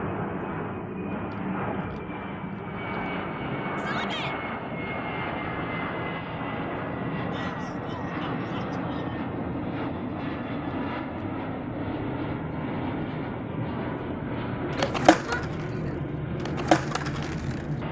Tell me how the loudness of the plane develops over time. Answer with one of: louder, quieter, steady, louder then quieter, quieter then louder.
steady.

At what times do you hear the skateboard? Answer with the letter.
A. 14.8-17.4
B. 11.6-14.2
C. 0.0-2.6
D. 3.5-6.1
A.